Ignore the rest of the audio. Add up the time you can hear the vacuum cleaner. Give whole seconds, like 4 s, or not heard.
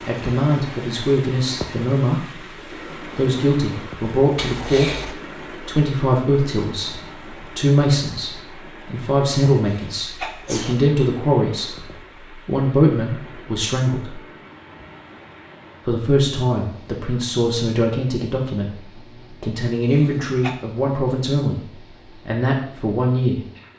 not heard.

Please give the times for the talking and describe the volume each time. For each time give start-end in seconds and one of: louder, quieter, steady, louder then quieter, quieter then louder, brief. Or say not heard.
0.1-2.2 brief
3.1-11.8 steady
12.4-14.2 brief
15.8-18.8 brief
19.4-21.6 brief
22.2-23.4 brief.